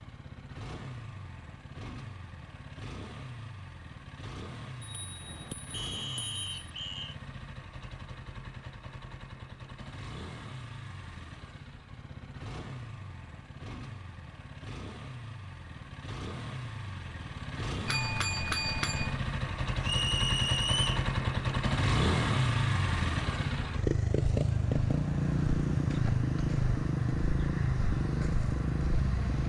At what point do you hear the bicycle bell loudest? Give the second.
19 s.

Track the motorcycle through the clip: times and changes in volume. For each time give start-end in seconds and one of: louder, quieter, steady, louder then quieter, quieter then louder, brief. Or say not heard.
0.0-29.4 louder.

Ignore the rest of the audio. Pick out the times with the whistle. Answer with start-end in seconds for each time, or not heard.
5.7-7.2, 19.8-21.1.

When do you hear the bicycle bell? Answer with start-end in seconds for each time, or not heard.
4.8-6.7, 17.9-19.2.